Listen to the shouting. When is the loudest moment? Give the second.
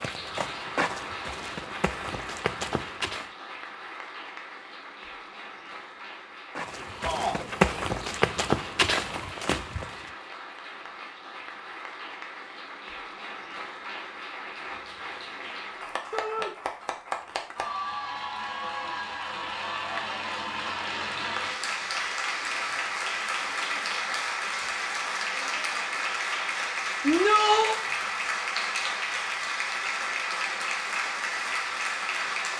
27 s.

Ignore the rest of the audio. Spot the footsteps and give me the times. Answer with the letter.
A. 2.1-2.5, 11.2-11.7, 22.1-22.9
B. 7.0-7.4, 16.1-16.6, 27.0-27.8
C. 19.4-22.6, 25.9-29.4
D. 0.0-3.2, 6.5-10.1
D.